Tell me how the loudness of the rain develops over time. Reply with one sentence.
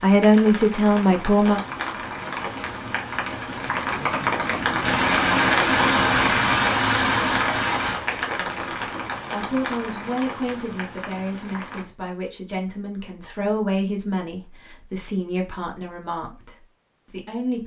The volume of the rain goes up, then down.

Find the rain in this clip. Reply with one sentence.
The rain can be heard from 0.0 to 11.8 s.